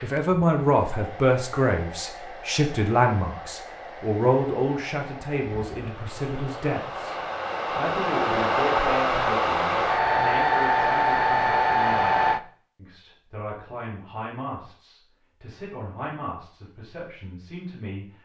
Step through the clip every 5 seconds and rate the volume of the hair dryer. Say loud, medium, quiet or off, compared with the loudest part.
quiet, medium, loud, off.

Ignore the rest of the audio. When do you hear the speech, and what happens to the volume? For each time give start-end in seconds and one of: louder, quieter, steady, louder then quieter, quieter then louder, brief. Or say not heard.
0.0-18.2 quieter.